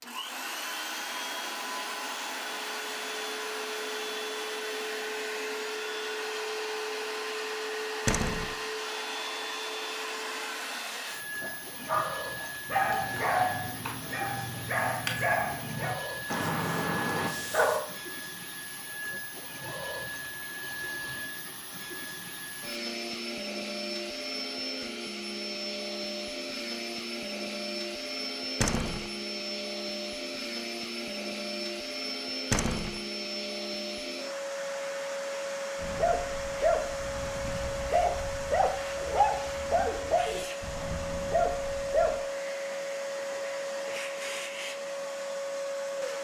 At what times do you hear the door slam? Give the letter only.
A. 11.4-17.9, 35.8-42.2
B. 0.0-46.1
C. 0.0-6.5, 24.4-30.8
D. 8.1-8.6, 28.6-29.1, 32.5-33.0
D.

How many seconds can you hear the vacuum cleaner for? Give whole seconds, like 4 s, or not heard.
46 s.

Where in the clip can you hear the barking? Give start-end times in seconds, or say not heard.
11.4-17.9, 35.8-42.2.